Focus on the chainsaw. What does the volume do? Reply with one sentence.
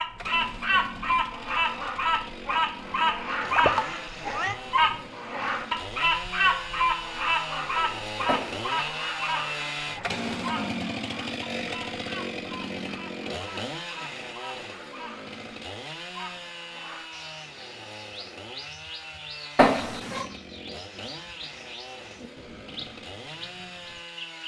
The loudness of the chainsaw goes up, then down.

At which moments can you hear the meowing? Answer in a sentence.
You can hear the meowing from 3.4 to 4.5 s, from 8.2 to 8.9 s and from 19.6 to 20.2 s.